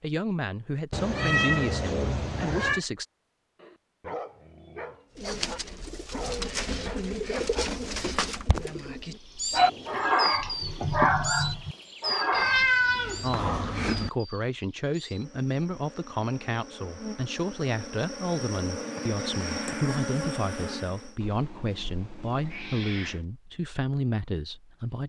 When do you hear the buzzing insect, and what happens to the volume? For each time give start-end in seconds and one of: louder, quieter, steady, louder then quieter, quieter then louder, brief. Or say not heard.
9.2-21.1 quieter then louder.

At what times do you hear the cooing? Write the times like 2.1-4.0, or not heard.
5.2-11.2.